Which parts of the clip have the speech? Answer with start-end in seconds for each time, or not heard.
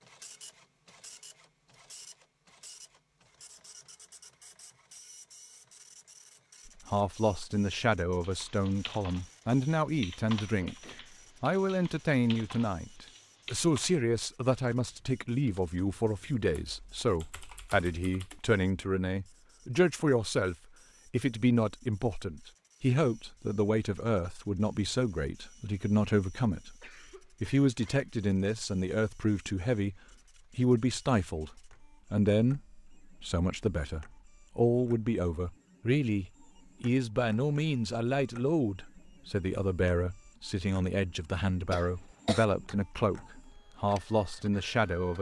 6.7-10.8, 11.4-26.8, 27.4-29.9, 30.6-45.1.